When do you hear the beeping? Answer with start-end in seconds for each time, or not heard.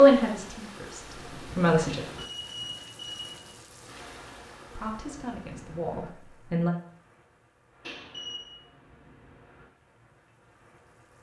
2.1-3.5, 7.8-8.4.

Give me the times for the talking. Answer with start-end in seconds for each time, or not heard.
0.0-2.0, 4.8-6.7.